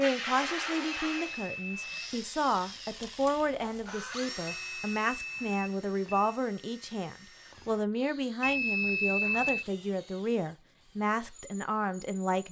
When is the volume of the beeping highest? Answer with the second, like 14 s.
9 s.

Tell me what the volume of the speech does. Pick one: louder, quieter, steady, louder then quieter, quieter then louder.
steady.